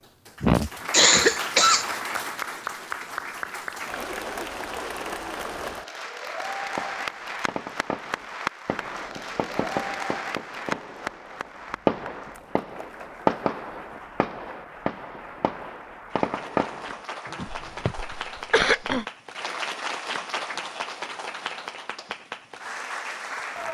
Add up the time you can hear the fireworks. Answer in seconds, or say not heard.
11 s.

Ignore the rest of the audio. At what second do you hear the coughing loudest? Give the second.
1 s.